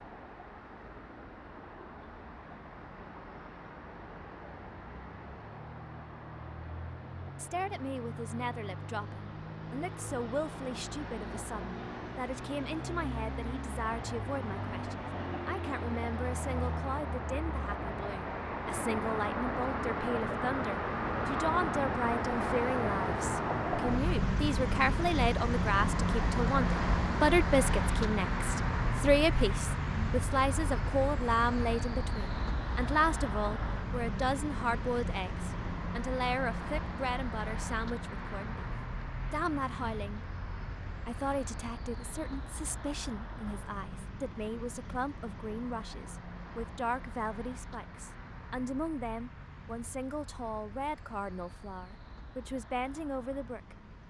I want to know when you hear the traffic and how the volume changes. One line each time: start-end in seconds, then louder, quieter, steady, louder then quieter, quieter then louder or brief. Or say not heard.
0.0-54.0 louder then quieter.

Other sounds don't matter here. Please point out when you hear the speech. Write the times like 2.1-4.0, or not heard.
7.3-38.6, 39.3-40.2, 41.0-53.8.